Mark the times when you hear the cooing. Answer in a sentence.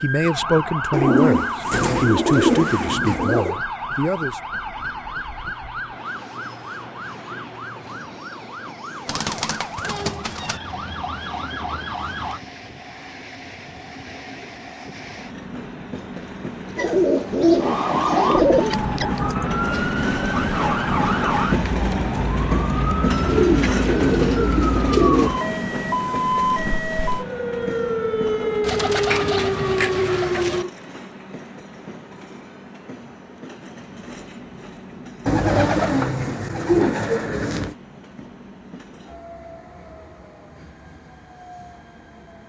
You can hear the cooing from 0.9 to 3.6 s, from 9.1 to 10.6 s, from 16.8 to 18.8 s, from 23.2 to 25.3 s, from 28.6 to 30.6 s and from 35.2 to 37.8 s.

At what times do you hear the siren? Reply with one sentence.
The siren can be heard from 0.0 to 12.4 s and from 17.6 to 30.7 s.